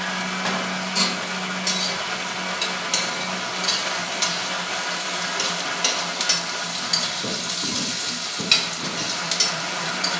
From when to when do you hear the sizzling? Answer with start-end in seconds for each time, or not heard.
0.0-10.1.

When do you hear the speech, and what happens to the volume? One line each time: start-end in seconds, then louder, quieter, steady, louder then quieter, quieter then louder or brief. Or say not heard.
not heard.